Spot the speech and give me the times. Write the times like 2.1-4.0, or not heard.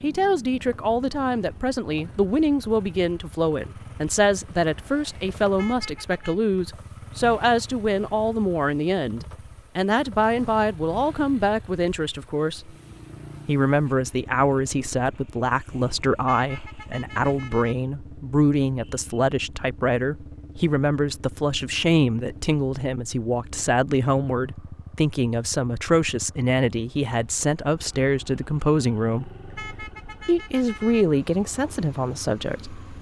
0.0-12.7, 13.4-29.3, 30.2-32.8.